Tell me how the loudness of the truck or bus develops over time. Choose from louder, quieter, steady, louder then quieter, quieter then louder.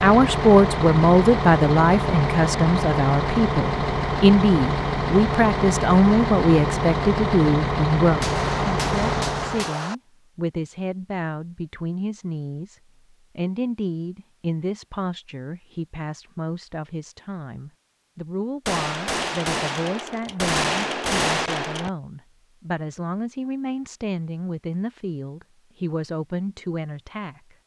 steady.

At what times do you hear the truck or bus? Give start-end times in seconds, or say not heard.
0.0-9.7.